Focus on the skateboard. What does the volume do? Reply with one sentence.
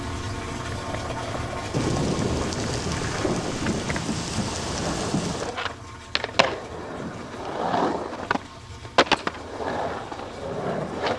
The loudness of the skateboard goes up.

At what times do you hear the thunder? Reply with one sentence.
The thunder can be heard from 1.7 to 5.5 s.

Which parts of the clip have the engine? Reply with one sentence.
The engine can be heard from 0.0 to 11.1 s.